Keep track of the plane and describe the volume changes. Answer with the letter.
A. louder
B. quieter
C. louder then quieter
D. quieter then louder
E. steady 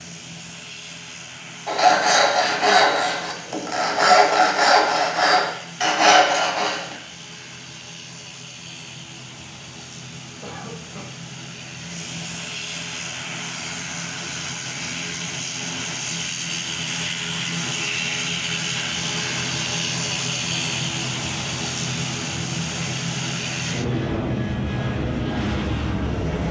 A.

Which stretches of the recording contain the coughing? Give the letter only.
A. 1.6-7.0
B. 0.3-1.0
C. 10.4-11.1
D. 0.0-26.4
C.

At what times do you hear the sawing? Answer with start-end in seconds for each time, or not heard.
1.6-7.0.